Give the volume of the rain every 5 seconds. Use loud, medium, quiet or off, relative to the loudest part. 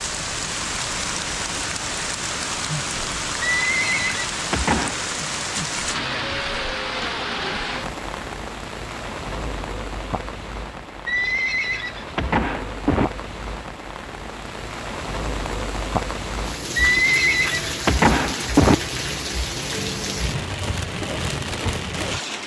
loud, loud, medium, loud, loud.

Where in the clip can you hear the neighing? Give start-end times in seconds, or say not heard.
3.4-5.0, 11.1-13.1, 16.8-18.8.